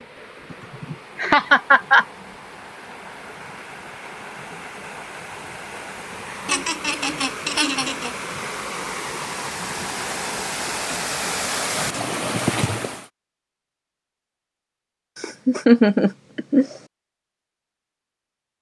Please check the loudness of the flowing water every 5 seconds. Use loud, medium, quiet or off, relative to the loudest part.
quiet, medium, loud, off.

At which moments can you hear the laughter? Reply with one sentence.
The laughter can be heard from 0.5 to 2.0 s, from 6.5 to 8.1 s and from 15.2 to 16.8 s.